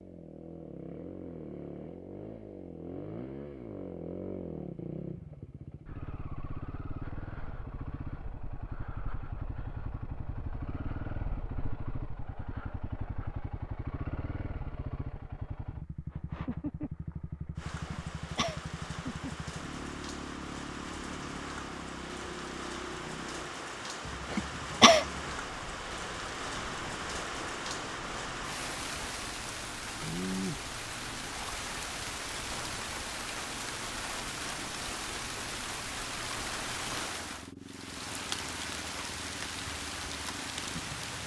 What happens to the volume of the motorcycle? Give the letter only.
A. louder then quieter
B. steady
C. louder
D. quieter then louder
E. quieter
E.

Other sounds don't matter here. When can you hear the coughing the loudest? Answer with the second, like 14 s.
25 s.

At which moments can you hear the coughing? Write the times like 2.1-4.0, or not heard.
17.9-18.6, 24.3-25.1.